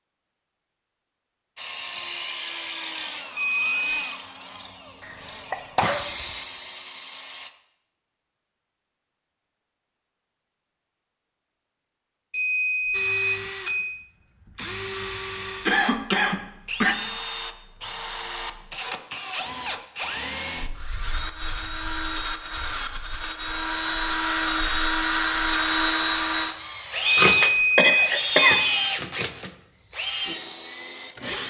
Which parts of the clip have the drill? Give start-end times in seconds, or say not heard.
1.6-7.5, 12.9-31.4.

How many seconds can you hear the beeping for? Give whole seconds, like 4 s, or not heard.
4 s.